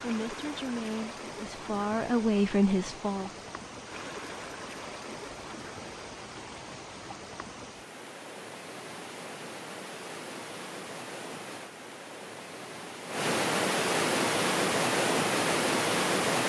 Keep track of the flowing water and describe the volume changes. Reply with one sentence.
The volume of the flowing water goes up.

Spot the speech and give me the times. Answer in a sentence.
You can hear the speech from 0.0 to 3.4 s.